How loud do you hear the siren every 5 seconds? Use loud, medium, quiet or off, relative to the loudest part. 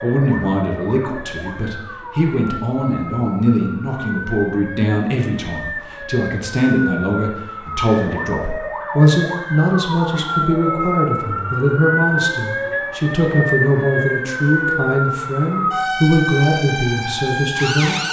medium, medium, loud, loud.